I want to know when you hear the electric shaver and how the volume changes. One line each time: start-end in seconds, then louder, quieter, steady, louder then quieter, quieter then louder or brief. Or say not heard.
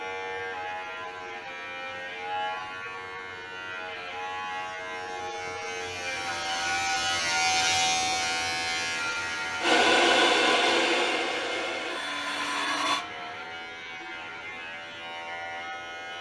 0.0-16.1 louder then quieter.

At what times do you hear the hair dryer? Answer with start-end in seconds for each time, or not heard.
9.6-13.1.